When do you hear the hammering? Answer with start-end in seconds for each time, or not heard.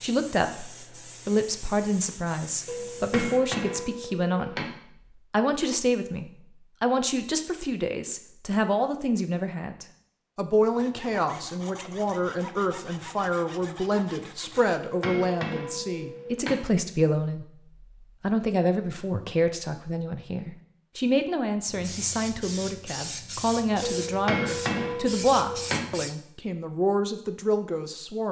2.6-4.7, 14.8-16.6, 23.8-25.8.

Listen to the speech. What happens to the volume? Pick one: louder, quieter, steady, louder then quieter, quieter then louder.
steady.